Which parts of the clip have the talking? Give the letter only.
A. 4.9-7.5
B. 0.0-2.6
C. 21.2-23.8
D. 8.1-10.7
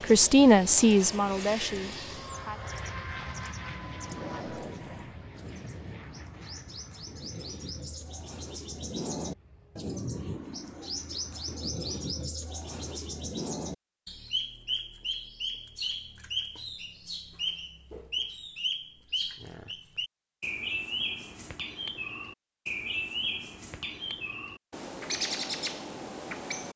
B.